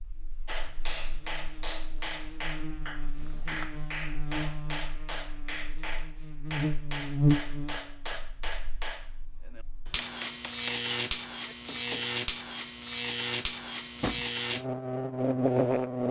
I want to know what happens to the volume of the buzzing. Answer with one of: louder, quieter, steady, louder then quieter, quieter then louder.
louder.